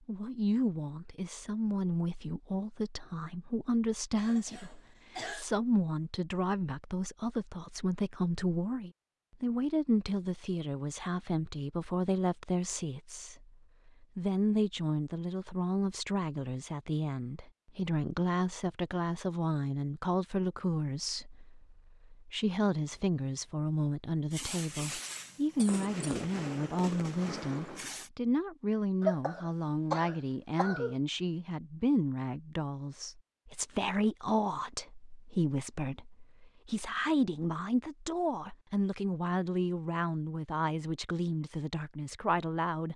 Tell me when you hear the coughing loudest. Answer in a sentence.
The volume of the coughing peaks at 29 seconds.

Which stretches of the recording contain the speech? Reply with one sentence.
The speech can be heard from 0.1 to 42.9 s.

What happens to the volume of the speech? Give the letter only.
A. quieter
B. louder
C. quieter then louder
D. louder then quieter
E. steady
E.